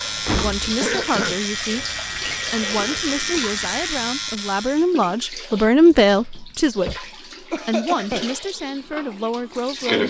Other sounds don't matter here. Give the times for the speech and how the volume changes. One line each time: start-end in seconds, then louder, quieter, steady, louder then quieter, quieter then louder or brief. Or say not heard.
0.2-10.0 louder then quieter.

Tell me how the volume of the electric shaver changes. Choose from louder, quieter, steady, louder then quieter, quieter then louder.
steady.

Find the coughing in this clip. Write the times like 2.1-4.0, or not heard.
0.8-1.4, 7.5-8.3.